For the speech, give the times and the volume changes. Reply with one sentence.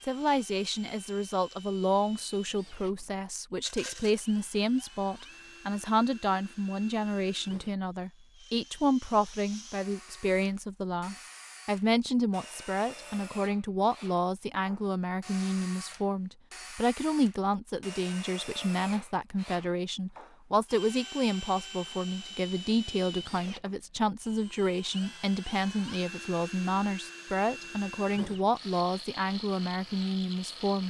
The speech can be heard from 0.0 to 30.8 s, at a steady volume.